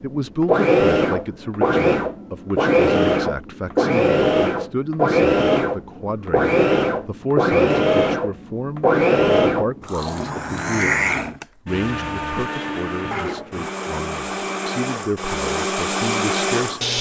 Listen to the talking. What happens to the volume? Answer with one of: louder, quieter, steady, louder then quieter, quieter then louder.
steady.